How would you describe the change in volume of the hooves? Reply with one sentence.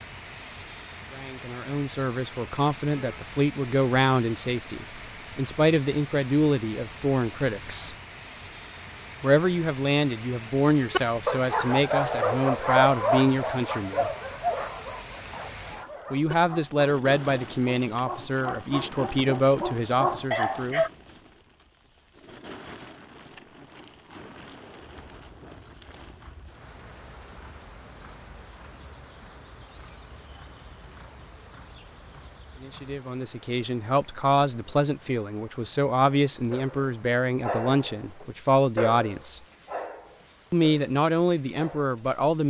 The loudness of the hooves stays about the same.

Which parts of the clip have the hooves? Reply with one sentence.
The hooves can be heard from 24.8 to 33.0 s.